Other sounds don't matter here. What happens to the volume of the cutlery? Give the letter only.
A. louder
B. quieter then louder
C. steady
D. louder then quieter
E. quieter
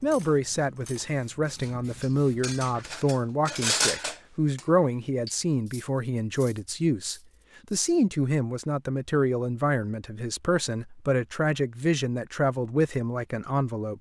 D.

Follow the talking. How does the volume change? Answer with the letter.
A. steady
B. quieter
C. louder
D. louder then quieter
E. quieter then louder
A.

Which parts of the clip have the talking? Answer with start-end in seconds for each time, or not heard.
0.0-13.9.